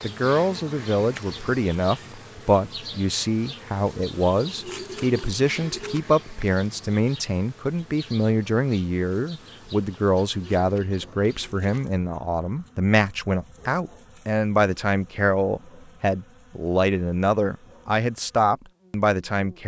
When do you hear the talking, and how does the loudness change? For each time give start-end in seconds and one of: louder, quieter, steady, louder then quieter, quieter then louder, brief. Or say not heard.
0.0-19.6 steady.